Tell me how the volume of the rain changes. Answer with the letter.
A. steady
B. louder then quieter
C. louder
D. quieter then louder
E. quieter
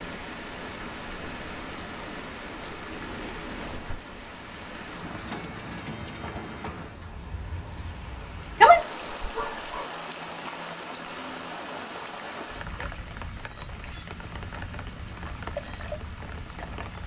A.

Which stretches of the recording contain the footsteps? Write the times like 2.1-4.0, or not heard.
not heard.